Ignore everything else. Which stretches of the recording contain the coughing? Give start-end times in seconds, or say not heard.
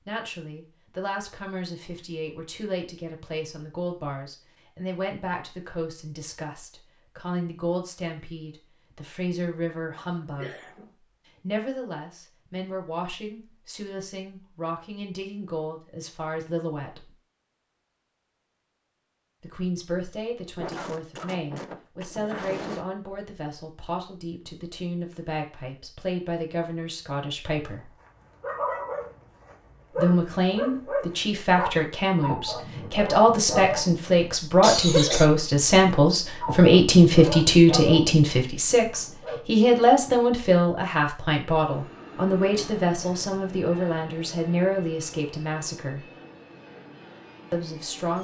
9.9-10.9, 20.6-22.9, 34.6-35.3.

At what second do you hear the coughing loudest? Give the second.
35 s.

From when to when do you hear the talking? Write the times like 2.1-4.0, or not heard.
0.1-10.5, 11.4-17.1, 19.4-27.9, 29.9-46.1, 47.5-48.2.